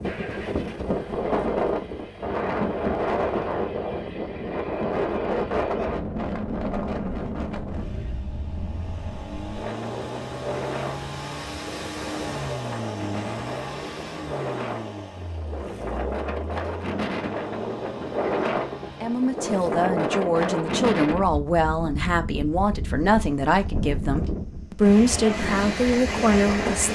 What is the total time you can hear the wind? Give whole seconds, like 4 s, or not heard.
27 s.